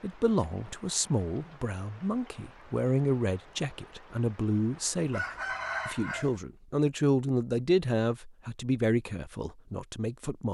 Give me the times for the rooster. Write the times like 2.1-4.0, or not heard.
5.1-6.3.